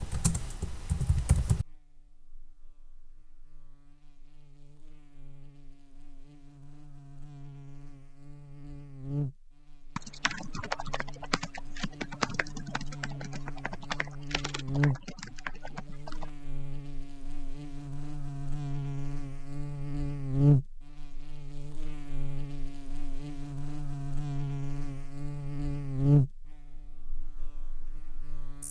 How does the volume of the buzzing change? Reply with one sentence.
The loudness of the buzzing goes up.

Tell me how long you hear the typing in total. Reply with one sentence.
You can hear the typing for 8 seconds altogether.